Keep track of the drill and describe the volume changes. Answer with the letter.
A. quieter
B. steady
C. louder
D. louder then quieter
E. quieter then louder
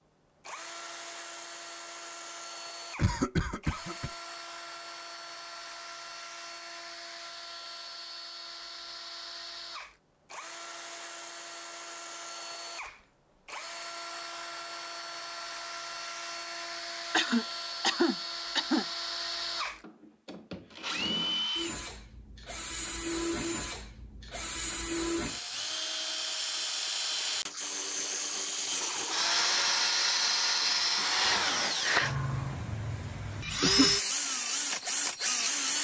C.